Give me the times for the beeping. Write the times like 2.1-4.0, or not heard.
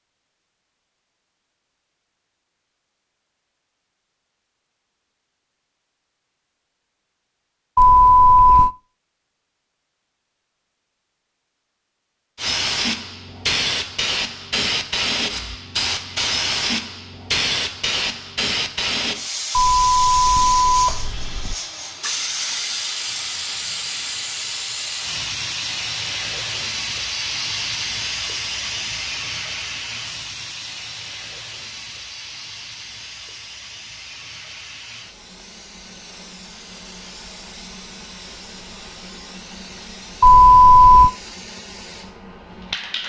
7.8-8.7, 19.5-21.6, 40.2-41.1.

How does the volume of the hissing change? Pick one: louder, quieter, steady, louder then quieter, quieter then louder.
quieter.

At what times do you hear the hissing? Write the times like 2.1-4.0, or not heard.
12.3-43.0.